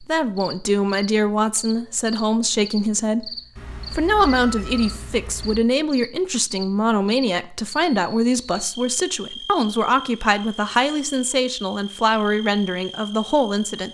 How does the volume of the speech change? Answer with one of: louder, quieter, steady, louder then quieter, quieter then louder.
steady.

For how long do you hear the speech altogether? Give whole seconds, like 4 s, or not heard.
13 s.